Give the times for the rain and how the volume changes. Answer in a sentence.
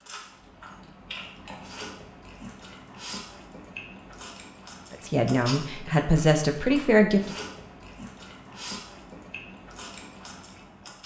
The rain can't be heard in this clip.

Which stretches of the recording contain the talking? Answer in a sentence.
You can hear the talking from 4.9 to 7.3 s.